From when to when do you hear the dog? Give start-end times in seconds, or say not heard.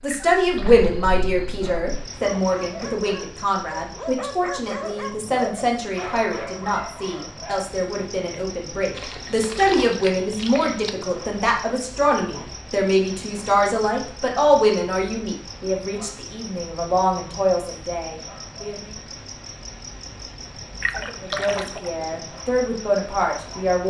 1.6-7.7.